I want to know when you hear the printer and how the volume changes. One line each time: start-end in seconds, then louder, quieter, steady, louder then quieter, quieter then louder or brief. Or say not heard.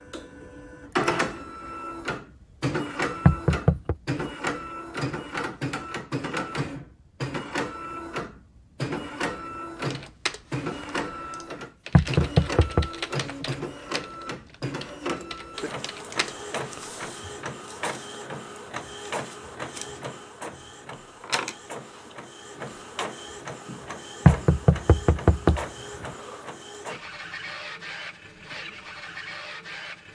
0.0-30.0 quieter.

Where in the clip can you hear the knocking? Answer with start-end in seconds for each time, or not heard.
3.2-4.0, 11.9-12.9, 24.2-25.6.